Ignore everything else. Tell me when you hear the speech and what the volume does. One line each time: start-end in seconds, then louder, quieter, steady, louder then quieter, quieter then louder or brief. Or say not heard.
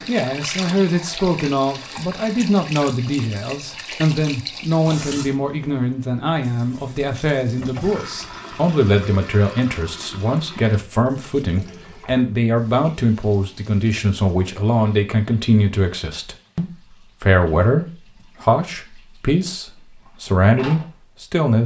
0.1-21.6 steady.